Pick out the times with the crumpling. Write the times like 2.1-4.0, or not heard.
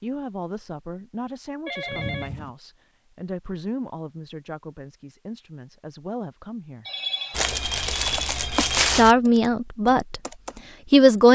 7.3-9.2.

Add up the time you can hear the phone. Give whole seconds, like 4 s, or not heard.
3 s.